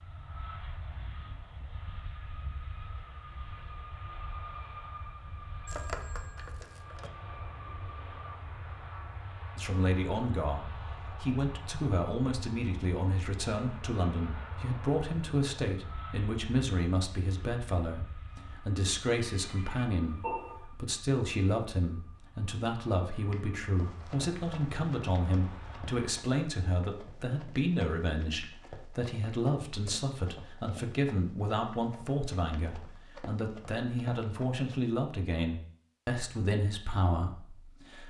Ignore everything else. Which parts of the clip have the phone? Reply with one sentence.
The phone can be heard from 5.7 to 7.1 s and from 19.2 to 20.6 s.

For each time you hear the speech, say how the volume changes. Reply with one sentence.
You can hear the speech from 9.6 to 38.0 s, at a steady volume.